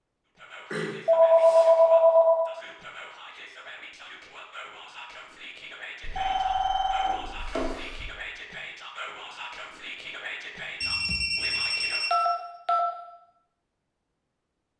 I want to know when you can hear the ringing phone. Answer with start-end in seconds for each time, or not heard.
0.7-2.5, 6.0-8.1, 10.8-12.8.